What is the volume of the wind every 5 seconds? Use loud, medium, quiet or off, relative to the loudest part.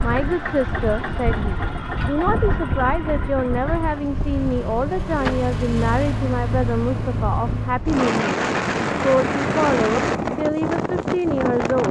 medium, loud, loud.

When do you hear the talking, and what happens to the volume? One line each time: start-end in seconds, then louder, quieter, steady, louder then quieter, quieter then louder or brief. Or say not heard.
0.0-11.8 steady.